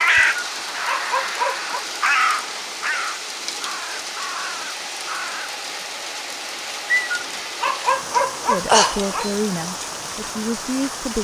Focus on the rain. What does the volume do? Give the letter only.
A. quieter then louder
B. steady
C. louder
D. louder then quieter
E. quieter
B.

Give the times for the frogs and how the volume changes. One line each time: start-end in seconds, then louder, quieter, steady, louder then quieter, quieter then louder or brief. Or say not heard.
not heard.